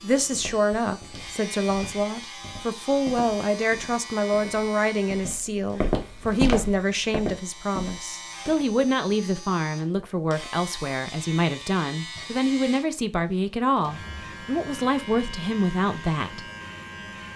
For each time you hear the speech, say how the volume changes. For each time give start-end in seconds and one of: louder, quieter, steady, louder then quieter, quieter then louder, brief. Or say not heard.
0.0-16.4 steady.